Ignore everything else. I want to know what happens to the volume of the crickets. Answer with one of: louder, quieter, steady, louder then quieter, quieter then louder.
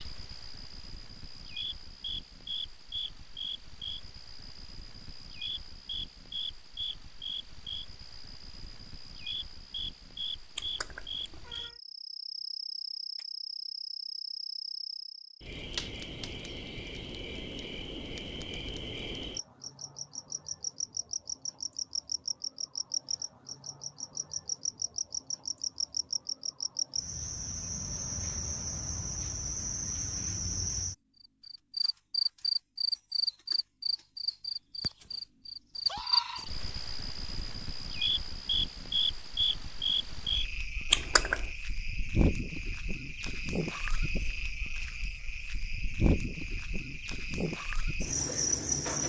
louder.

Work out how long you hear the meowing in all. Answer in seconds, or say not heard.
2 s.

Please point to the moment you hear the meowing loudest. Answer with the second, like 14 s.
41 s.